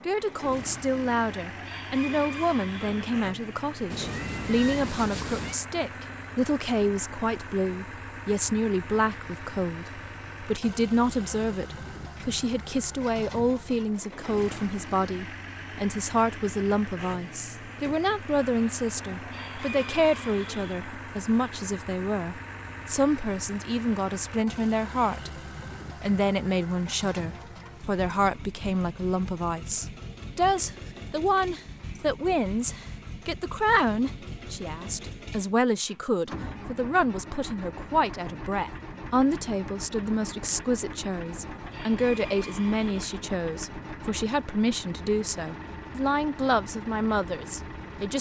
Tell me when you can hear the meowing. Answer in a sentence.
The meowing can be heard from 3.9 to 5.5 s.